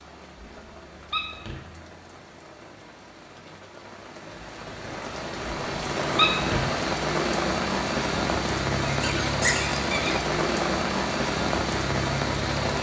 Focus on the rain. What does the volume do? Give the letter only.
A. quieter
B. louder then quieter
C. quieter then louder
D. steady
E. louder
E.